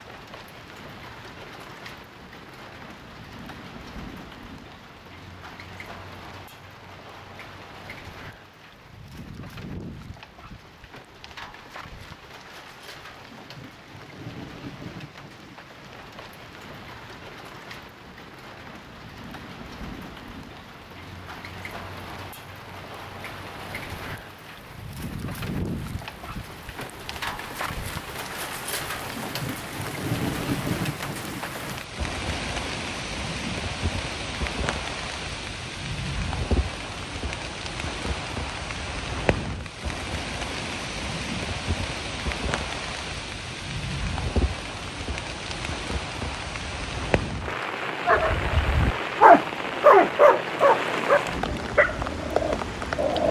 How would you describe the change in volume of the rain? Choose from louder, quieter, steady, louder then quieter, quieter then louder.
louder.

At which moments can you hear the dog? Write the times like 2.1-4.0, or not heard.
48.0-53.2.